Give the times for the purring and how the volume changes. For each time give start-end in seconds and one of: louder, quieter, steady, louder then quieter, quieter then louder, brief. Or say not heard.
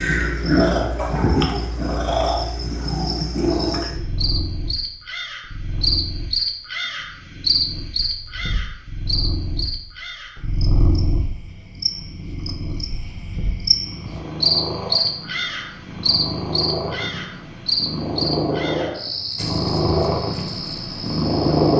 0.0-21.7 quieter then louder.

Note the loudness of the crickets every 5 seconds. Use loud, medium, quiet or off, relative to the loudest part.
medium, loud, loud, loud, medium.